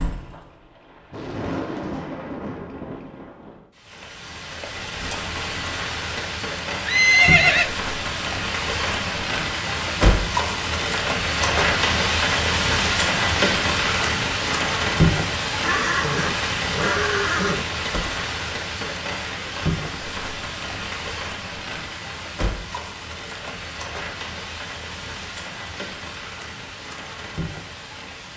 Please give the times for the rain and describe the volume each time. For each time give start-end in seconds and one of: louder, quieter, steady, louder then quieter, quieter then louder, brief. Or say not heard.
0.0-28.3 louder then quieter.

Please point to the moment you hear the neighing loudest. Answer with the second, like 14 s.
7 s.